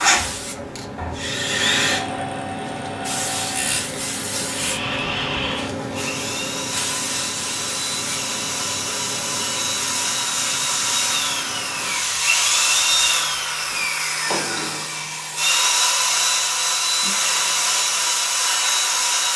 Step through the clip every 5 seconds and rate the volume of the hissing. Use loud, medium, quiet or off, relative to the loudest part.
loud, loud, medium, medium.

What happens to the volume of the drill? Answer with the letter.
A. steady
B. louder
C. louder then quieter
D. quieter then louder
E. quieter
B.